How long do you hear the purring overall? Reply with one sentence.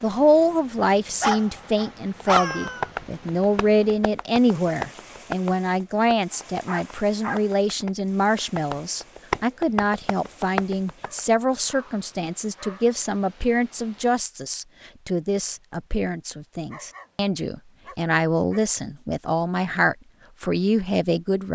You can't hear the purring here.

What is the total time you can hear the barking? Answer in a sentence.
The barking can be heard for 6 seconds in total.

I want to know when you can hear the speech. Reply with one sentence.
The speech can be heard from 0.0 to 21.5 s.